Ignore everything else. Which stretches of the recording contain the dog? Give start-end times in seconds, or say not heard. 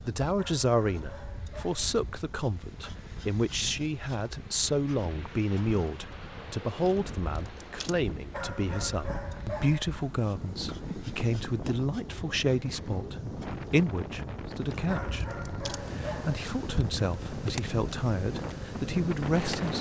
0.3-1.9, 8.3-10.0, 14.8-16.4.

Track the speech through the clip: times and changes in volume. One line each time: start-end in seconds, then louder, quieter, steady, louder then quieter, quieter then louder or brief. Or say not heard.
0.0-19.7 steady.